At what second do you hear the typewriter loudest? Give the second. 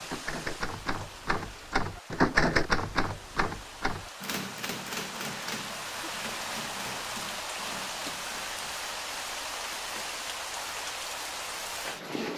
2 s.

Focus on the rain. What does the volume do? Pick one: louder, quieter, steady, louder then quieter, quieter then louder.
louder.